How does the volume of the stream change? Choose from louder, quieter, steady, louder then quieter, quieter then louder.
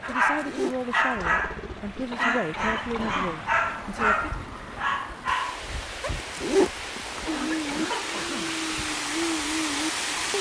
louder.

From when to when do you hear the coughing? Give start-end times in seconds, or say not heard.
2.1-3.3, 7.2-8.6.